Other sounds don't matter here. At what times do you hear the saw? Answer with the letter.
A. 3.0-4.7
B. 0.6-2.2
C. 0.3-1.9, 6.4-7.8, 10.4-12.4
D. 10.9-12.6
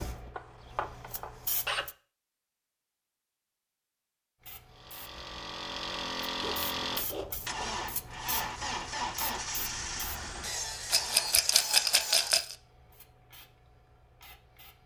C.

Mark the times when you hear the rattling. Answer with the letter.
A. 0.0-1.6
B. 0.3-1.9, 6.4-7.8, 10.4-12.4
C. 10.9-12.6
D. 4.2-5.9
C.